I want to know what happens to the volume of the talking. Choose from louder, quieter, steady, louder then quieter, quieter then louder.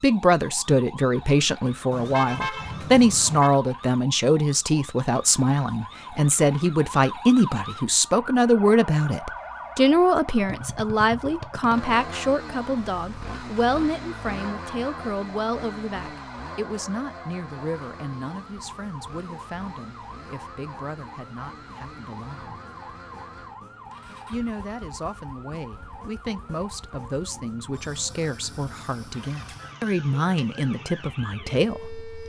quieter then louder.